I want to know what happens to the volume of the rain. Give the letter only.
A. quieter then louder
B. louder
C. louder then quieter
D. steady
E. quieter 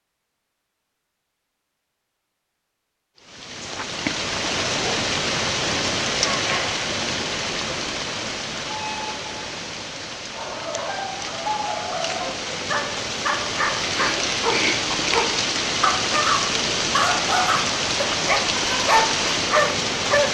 A.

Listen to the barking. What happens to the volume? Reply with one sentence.
The volume of the barking goes up.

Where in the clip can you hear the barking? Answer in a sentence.
The barking can be heard from 10.2 to 20.3 s.